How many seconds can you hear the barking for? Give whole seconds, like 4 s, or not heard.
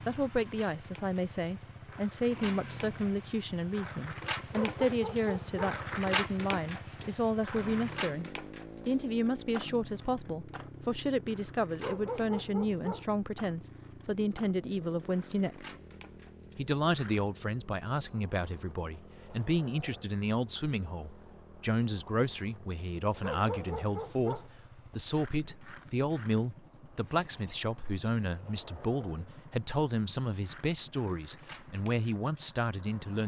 4 s.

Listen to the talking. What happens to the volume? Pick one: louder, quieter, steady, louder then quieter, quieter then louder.
steady.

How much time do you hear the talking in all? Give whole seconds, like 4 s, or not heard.
32 s.